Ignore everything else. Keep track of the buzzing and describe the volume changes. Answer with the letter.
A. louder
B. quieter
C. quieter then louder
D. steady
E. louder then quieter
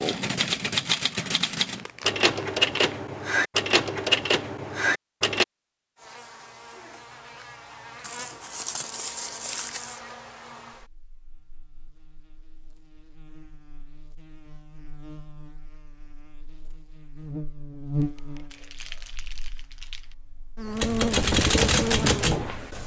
C.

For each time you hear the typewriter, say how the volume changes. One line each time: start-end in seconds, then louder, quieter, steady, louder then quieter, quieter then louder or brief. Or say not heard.
0.0-5.5 steady
20.8-22.8 brief.